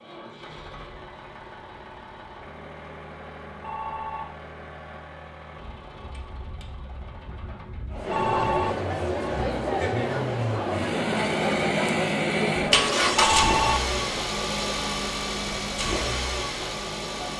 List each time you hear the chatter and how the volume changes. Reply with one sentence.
You can hear the chatter from 7.9 to 17.3 s, getting quieter.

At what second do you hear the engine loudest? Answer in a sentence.
The volume of the engine peaks at 13 seconds.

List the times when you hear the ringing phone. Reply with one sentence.
You can hear the ringing phone from 3.5 to 4.2 s, from 8.0 to 8.8 s and from 13.2 to 13.8 s.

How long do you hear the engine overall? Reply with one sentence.
You can hear the engine for 17 seconds altogether.